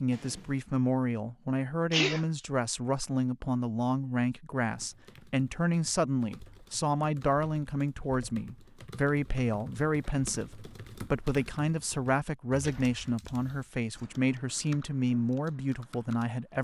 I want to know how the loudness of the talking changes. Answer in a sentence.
The loudness of the talking stays about the same.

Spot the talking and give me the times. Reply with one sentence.
You can hear the talking from 0.0 to 16.5 s.